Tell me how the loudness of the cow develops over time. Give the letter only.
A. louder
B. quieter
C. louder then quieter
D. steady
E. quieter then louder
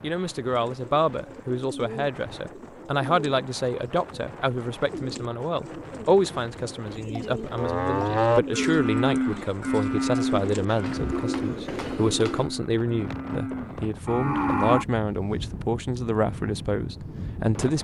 E.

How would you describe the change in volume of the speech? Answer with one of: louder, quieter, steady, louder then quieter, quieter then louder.
steady.